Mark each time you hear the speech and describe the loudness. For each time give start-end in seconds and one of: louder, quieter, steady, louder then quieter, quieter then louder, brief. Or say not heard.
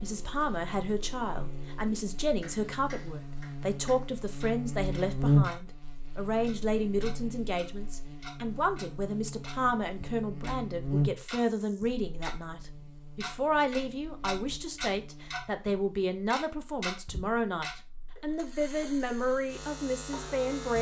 0.0-20.7 steady.